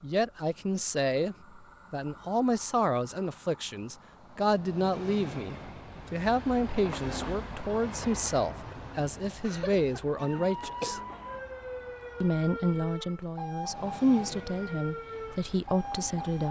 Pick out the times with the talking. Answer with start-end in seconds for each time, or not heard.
0.0-11.0, 12.2-16.4.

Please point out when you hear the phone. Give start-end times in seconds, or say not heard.
not heard.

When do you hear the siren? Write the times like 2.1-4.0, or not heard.
10.2-16.4.